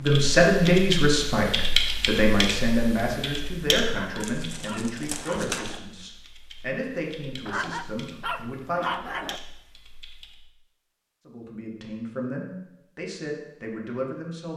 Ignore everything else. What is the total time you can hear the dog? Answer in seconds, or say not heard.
4 s.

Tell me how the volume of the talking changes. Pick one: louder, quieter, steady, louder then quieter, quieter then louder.
quieter.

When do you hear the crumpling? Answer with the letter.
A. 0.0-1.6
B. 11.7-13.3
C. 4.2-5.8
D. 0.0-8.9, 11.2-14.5
C.